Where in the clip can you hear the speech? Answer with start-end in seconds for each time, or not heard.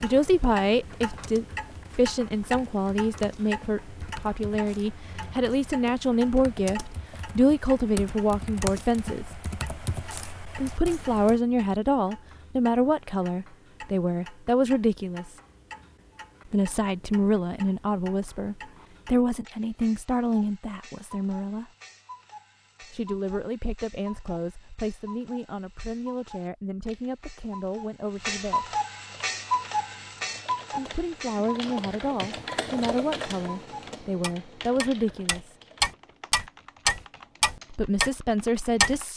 0.0-9.2, 10.6-15.3, 16.5-21.7, 22.8-28.8, 30.8-35.5, 37.7-39.1.